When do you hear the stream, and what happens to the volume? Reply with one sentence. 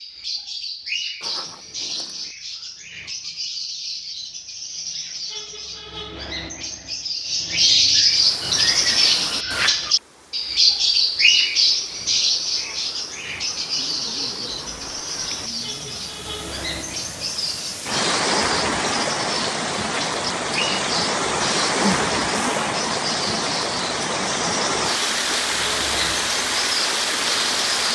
You can hear the stream from 8.0 to 27.9 s, getting louder.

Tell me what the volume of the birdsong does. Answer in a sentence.
The volume of the birdsong goes up, then down.